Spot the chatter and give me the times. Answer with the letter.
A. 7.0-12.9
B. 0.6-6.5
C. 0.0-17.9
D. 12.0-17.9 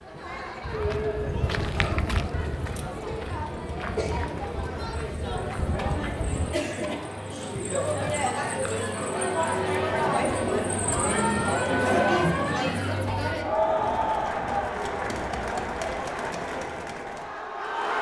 C.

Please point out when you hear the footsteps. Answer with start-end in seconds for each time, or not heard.
0.6-6.5.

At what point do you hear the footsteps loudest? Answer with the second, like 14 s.
2 s.